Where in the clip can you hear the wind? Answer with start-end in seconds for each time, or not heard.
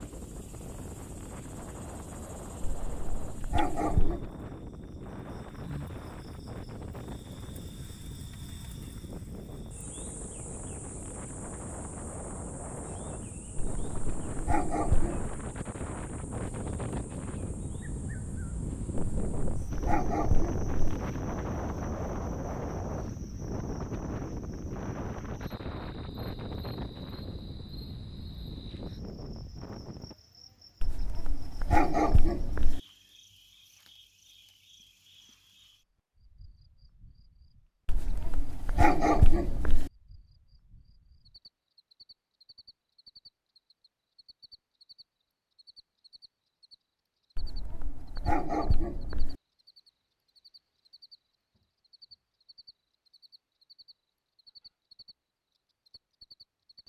0.0-30.1.